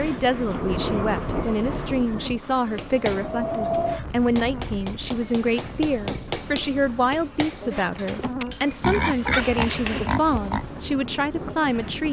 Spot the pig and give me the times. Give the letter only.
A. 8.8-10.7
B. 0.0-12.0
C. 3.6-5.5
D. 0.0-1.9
A.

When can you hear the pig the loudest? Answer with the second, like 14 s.
9 s.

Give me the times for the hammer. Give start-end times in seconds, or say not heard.
2.8-10.2.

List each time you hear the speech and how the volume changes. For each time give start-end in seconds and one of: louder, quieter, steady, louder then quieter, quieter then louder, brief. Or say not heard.
0.0-12.0 steady.